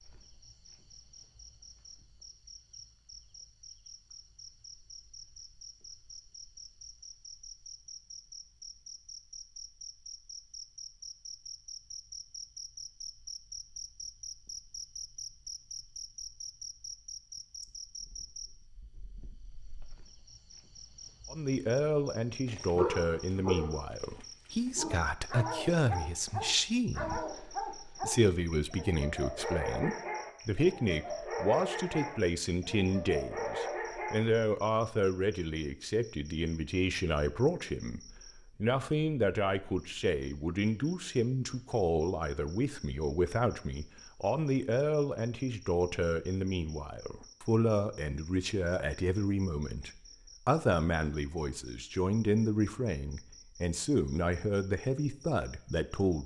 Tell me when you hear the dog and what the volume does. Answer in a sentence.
You can hear the dog from 22.4 to 34.4 s, at a steady volume.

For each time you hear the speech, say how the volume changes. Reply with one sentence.
You can hear the speech from 21.3 to 56.2 s, at a steady volume.